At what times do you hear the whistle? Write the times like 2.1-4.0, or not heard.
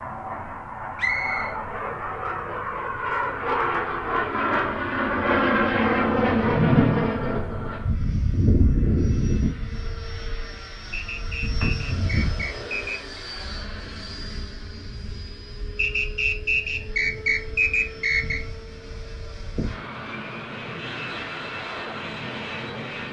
0.9-1.6, 10.9-13.2, 15.8-18.4.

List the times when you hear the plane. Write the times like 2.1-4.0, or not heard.
0.0-23.0.